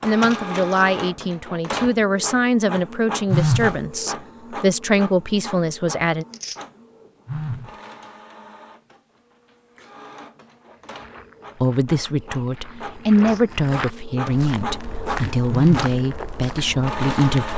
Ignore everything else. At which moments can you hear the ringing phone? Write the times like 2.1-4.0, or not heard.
3.3-3.8, 7.2-7.8, 15.5-15.9.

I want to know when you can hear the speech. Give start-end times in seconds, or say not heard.
0.0-6.2, 11.6-17.5.